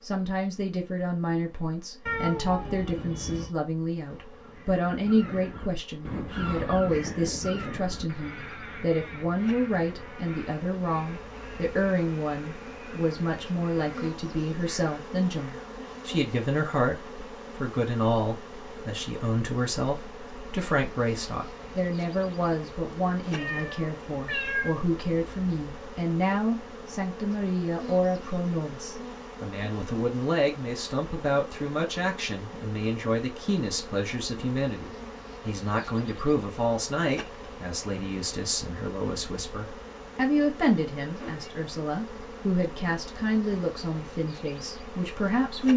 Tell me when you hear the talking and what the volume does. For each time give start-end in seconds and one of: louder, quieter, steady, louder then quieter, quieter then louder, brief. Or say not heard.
0.0-45.7 steady.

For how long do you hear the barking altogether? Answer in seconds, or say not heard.
not heard.